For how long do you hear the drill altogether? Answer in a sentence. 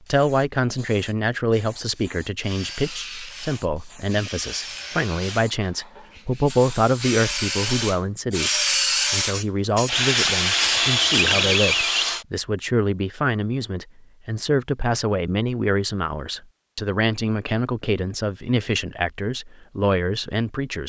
The drill can be heard for 10 seconds in total.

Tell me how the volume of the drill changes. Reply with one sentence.
The volume of the drill goes up.